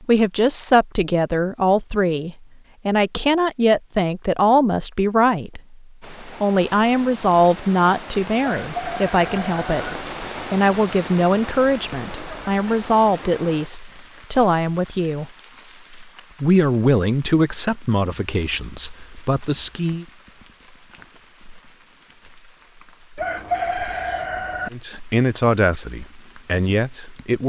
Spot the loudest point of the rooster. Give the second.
24 s.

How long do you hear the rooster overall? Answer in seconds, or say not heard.
3 s.